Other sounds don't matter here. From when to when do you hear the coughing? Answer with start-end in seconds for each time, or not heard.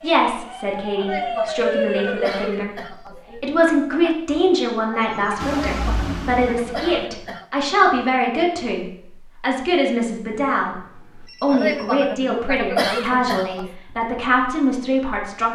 0.9-3.5, 5.7-7.5, 11.4-13.8.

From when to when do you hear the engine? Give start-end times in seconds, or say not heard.
5.3-7.0.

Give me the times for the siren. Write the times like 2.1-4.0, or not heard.
0.0-2.8.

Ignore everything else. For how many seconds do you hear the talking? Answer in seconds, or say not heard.
14 s.